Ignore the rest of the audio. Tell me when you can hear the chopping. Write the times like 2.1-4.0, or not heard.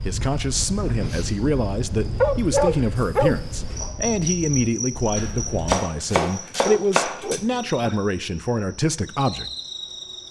5.2-7.4.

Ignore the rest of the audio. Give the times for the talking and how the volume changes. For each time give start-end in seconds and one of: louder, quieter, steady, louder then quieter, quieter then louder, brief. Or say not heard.
0.1-9.5 steady.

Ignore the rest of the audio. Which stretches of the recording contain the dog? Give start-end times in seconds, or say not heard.
2.2-3.4, 6.1-8.1.